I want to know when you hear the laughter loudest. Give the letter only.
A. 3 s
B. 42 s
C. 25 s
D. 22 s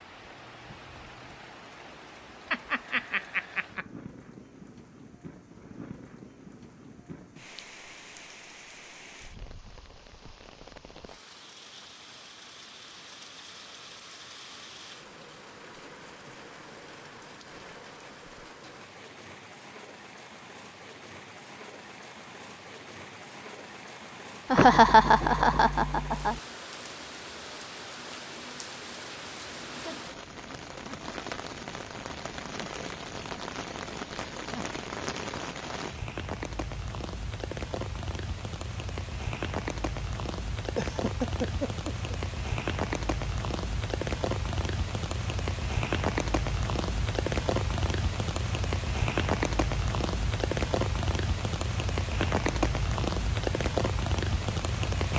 C.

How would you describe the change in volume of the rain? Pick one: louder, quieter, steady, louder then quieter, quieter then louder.
louder.